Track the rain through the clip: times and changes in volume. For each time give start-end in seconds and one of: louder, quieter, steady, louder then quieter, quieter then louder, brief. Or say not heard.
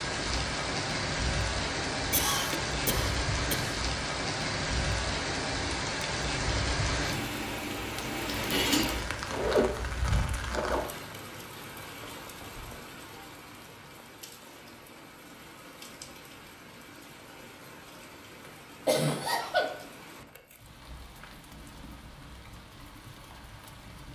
0.0-24.1 quieter.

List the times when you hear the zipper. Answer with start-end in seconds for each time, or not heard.
9.3-11.2.